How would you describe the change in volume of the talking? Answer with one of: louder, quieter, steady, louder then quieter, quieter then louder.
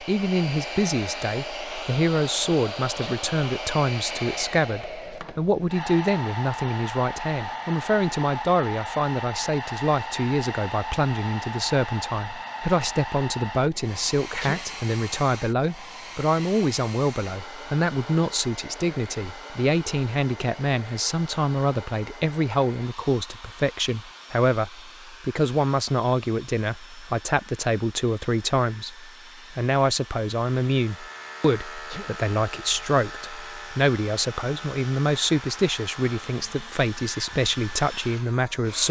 steady.